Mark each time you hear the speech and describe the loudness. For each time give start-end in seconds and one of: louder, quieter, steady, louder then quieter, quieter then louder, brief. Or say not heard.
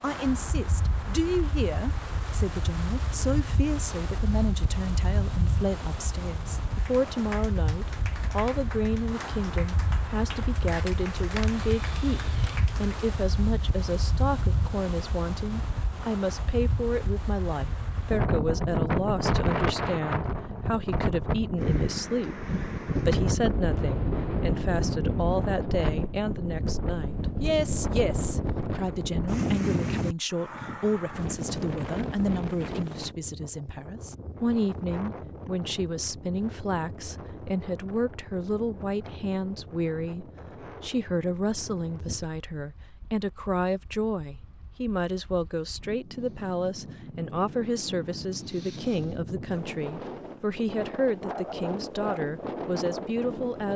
0.0-53.7 steady.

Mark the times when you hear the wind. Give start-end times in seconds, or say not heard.
0.0-53.7.